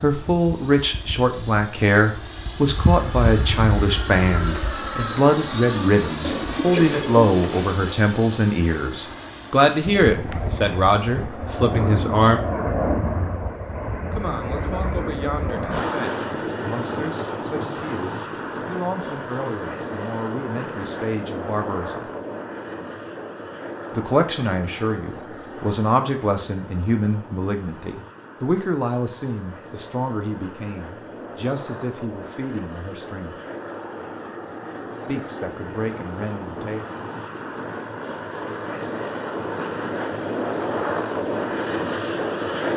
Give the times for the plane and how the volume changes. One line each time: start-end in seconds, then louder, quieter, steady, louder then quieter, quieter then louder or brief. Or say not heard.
0.0-42.7 quieter then louder.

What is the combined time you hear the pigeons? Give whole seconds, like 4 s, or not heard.
2 s.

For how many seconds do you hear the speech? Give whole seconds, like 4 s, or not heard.
32 s.